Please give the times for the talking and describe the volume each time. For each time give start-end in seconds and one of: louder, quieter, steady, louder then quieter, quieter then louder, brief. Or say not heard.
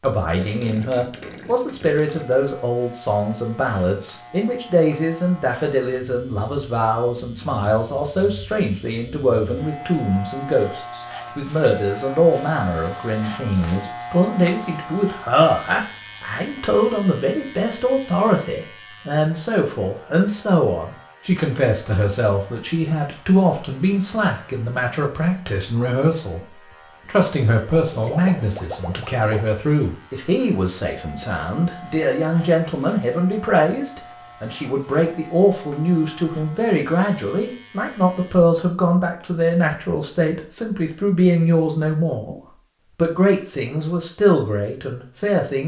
0.0-26.4 steady
27.1-45.6 steady.